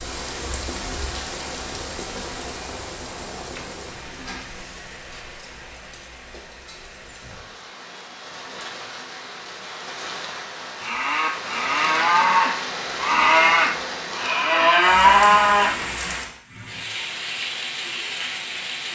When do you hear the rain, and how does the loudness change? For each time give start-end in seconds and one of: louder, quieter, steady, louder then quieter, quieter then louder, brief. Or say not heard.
0.0-18.9 quieter then louder.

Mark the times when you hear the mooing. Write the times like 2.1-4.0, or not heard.
10.8-15.8.